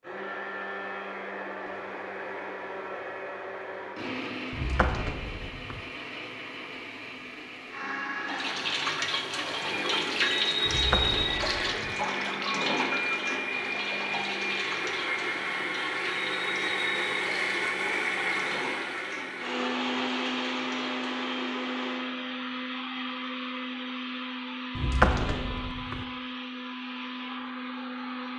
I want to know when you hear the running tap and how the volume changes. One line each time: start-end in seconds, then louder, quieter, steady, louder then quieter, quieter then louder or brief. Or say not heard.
8.2-21.4 quieter.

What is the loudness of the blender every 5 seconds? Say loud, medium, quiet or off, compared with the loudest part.
medium, medium, loud, loud, loud, medium.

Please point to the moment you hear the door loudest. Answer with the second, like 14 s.
25 s.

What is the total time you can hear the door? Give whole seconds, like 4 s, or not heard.
4 s.